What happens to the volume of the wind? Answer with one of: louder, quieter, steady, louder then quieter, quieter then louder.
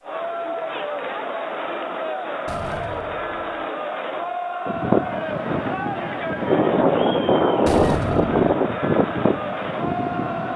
louder then quieter.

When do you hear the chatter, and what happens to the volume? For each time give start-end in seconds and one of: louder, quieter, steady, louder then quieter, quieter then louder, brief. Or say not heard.
0.0-10.5 steady.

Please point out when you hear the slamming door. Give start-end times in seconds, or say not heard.
2.5-3.6, 7.7-8.6.